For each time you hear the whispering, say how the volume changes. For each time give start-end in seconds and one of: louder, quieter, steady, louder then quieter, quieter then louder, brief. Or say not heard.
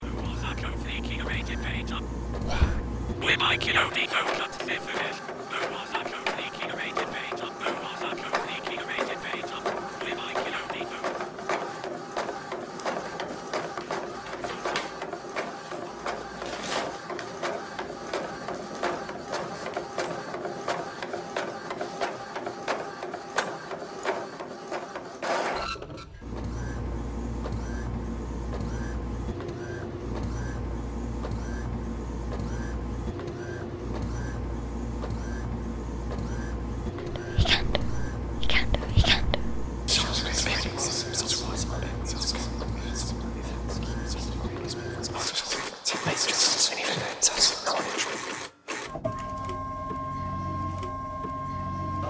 0.0-11.2 louder then quieter
37.0-48.2 quieter then louder.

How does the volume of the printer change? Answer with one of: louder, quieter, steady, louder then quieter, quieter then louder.
steady.